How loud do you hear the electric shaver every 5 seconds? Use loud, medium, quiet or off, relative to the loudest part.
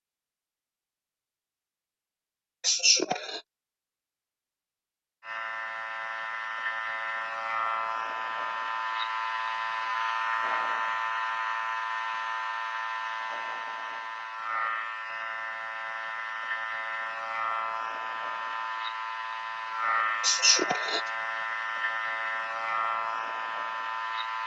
off, loud, loud, loud, loud.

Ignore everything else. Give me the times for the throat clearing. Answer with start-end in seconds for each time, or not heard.
2.6-3.4, 20.2-21.0.